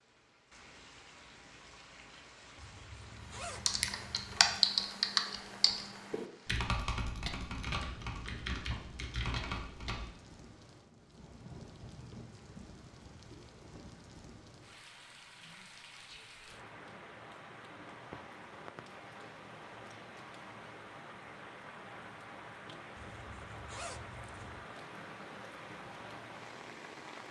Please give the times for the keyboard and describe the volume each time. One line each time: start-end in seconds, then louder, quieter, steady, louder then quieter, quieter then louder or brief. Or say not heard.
3.5-10.1 quieter.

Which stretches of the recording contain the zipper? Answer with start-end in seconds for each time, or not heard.
2.5-4.4, 22.9-24.6.